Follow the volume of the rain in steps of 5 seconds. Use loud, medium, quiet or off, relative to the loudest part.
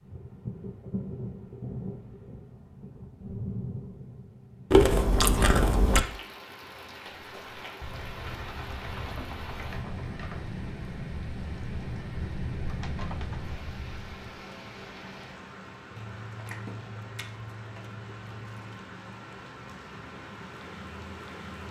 loud, loud, loud, medium, loud.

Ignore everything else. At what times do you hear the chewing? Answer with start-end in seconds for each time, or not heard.
4.7-6.0, 15.9-18.8.